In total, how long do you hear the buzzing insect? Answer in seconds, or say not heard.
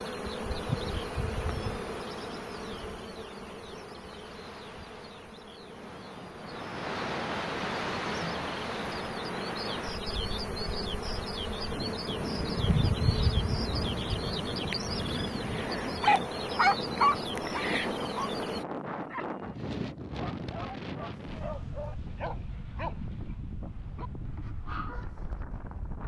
19 s.